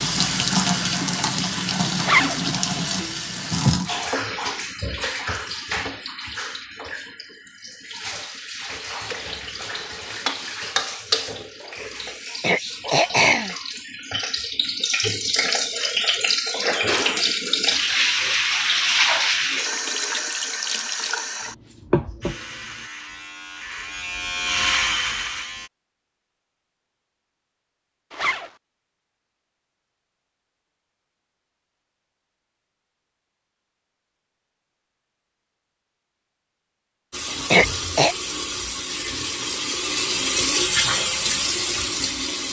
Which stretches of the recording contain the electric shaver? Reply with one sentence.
You can hear the electric shaver from 22.2 to 25.7 s.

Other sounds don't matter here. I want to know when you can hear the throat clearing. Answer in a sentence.
The throat clearing can be heard from 12.4 to 13.6 s and from 37.5 to 38.1 s.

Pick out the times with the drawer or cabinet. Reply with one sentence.
The drawer or cabinet can't be heard in this clip.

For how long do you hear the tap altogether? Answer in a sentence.
The tap can be heard for 28 seconds in total.